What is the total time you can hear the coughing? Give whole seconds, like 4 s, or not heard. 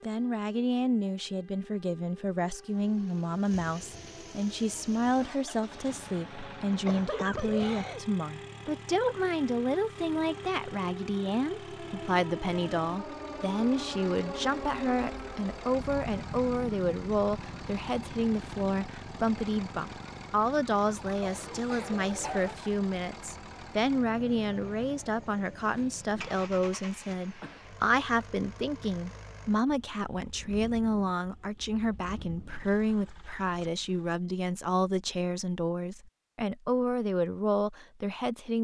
5 s.